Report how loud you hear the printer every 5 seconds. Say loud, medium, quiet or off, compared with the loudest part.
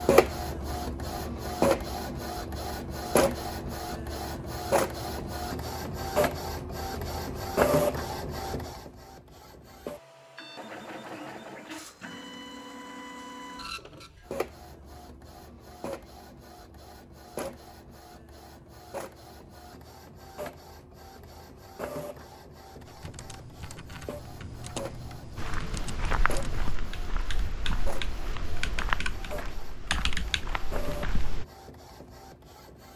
loud, loud, quiet, quiet, quiet, quiet, quiet.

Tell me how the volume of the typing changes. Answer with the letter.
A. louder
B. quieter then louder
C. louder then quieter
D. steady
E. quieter
A.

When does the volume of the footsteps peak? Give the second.
29 s.